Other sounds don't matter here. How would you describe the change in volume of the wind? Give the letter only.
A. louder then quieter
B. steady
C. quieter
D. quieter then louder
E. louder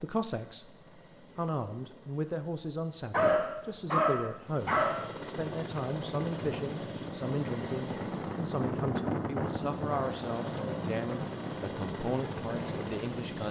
A.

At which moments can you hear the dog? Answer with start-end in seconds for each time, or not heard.
3.1-5.0.